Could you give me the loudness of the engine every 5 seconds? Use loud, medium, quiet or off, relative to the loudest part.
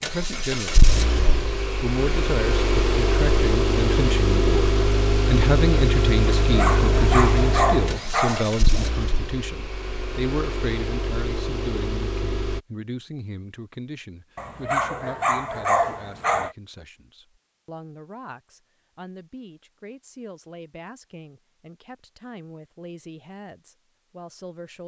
loud, loud, medium, off, off.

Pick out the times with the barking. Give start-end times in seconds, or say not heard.
6.4-8.9, 14.3-16.6.